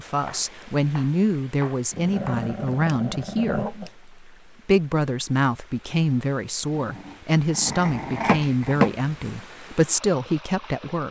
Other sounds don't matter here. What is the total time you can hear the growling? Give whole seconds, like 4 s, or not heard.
4 s.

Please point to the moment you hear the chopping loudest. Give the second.
9 s.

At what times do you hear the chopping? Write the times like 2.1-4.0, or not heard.
0.2-2.5, 7.7-9.4.